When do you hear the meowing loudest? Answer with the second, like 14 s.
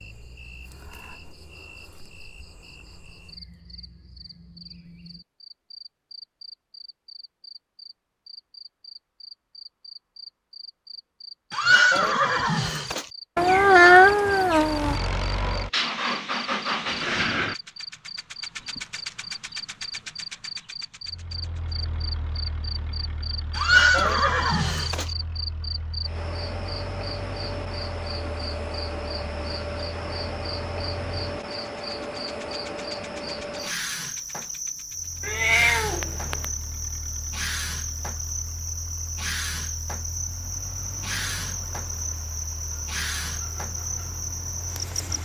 14 s.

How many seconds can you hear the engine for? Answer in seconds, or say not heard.
31 s.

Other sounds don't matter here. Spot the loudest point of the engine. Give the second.
17 s.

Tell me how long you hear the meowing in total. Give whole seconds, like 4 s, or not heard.
3 s.